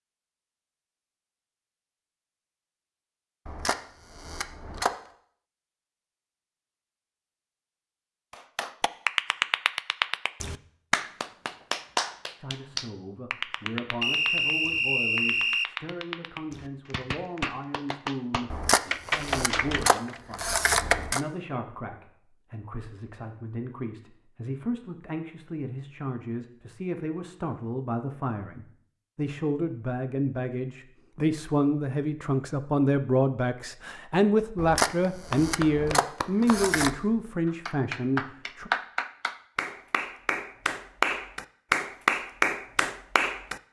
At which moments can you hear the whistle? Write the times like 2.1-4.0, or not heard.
14.0-15.7.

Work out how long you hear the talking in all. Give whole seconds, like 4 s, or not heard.
26 s.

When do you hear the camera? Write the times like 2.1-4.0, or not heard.
3.5-5.0, 18.5-21.2, 34.5-37.0.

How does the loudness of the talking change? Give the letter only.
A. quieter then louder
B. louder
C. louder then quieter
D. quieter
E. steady
B.